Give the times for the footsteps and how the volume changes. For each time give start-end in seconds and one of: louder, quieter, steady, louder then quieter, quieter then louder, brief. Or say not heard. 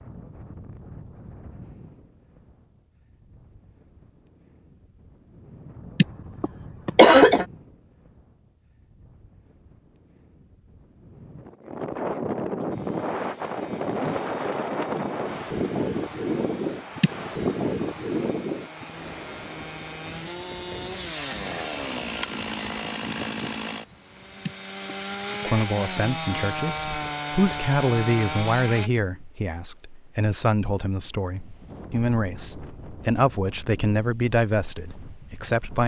not heard.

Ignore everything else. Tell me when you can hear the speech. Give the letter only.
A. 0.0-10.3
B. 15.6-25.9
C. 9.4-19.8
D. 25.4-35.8
D.